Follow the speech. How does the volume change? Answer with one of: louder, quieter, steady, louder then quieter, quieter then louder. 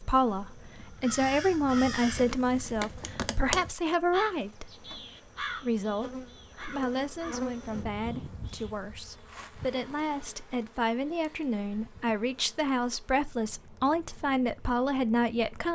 quieter then louder.